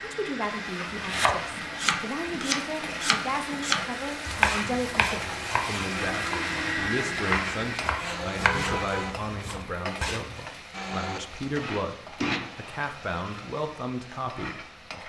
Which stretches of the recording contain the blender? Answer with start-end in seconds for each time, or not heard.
0.0-9.2, 10.7-12.4.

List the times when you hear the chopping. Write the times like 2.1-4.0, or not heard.
0.9-10.3.